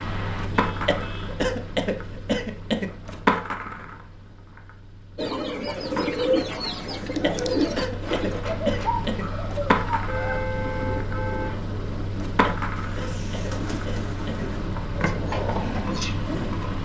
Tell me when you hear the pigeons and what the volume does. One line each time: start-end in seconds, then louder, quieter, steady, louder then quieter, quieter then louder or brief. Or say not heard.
5.2-16.4 quieter.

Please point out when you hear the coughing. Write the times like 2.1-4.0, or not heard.
0.8-2.9, 7.2-9.2, 12.4-14.4.